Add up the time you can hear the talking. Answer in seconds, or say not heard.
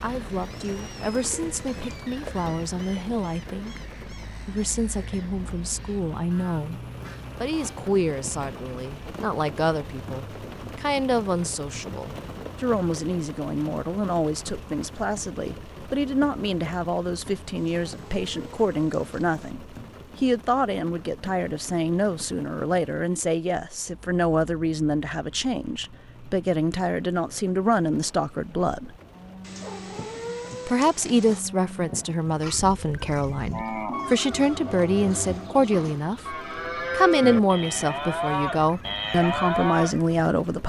38 s.